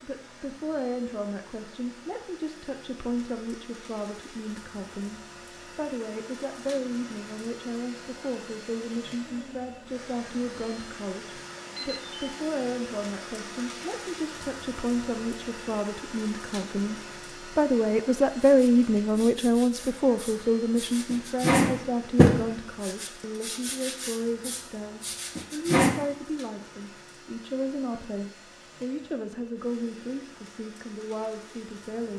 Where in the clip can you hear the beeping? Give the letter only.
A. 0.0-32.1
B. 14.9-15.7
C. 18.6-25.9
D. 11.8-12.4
D.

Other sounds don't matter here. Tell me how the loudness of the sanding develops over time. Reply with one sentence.
The loudness of the sanding goes up, then down.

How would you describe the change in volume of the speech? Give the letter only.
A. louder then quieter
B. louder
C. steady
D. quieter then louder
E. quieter
A.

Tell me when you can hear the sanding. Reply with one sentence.
The sanding can be heard from 18.6 to 25.9 s.